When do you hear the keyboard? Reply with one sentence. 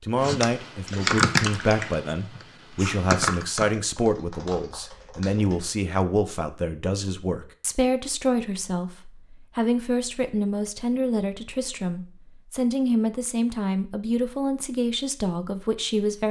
The keyboard can be heard from 0.2 to 5.8 s.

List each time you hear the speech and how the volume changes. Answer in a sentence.
You can hear the speech from 0.0 to 16.2 s, at a steady volume.